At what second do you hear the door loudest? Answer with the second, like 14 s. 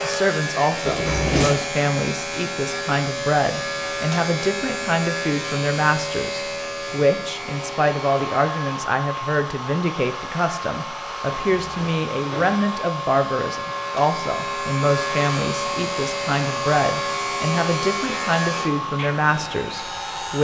1 s.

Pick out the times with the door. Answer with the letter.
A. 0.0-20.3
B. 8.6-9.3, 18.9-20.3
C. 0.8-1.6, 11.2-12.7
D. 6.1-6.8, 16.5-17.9
C.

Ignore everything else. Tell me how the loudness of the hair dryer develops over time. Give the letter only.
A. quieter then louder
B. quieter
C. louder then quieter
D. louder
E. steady
E.